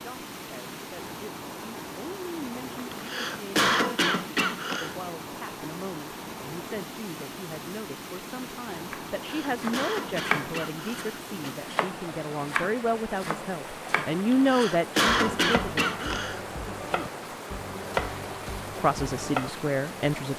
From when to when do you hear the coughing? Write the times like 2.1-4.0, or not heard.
2.8-5.0, 9.2-11.6, 14.2-16.4.